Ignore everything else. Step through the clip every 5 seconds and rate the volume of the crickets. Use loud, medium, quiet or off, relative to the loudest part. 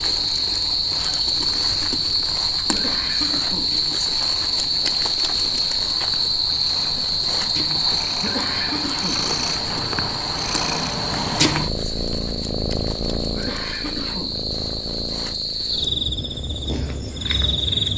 loud, loud, medium, loud.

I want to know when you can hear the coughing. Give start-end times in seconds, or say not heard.
2.7-4.3, 8.2-9.8, 13.3-14.4.